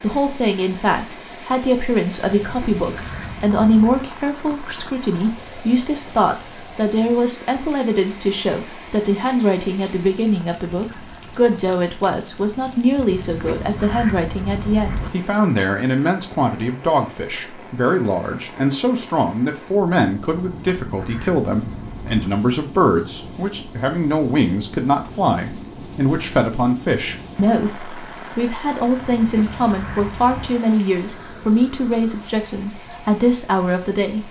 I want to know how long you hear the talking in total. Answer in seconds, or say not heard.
34 s.